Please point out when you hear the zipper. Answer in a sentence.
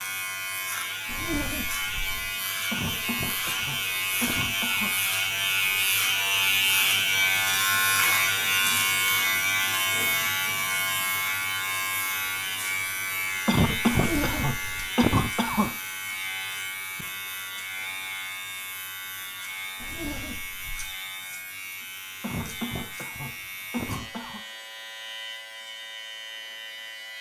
The zipper can be heard from 1.1 to 2.1 s, from 13.9 to 14.8 s and from 19.8 to 20.9 s.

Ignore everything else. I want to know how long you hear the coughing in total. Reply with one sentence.
You can hear the coughing for 7 seconds altogether.